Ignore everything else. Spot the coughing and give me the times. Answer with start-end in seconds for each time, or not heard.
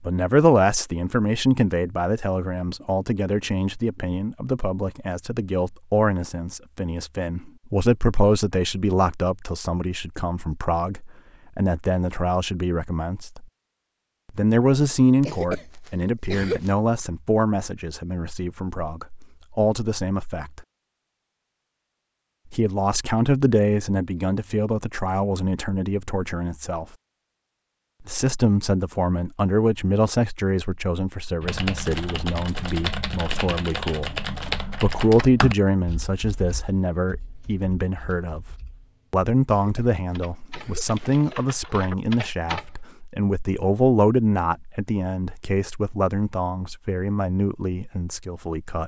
15.2-16.7, 39.5-41.5.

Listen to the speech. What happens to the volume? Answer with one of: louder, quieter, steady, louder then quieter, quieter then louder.
steady.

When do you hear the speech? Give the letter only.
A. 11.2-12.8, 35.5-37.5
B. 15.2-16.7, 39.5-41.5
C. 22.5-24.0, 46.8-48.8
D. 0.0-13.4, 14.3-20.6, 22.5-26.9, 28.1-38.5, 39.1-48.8
D.